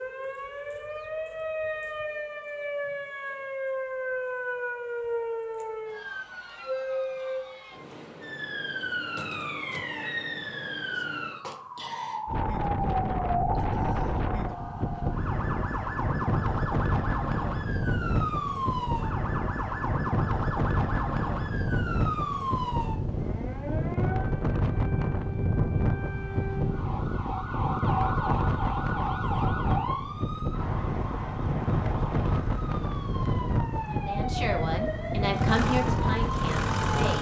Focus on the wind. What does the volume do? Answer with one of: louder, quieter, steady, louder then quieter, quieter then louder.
steady.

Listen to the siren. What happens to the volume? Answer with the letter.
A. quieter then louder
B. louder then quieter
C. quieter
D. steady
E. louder
D.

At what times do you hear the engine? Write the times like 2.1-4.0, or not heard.
35.3-37.1.